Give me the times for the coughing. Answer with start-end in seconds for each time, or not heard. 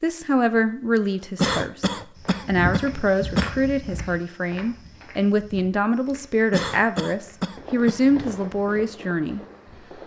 1.4-3.5, 6.5-8.0.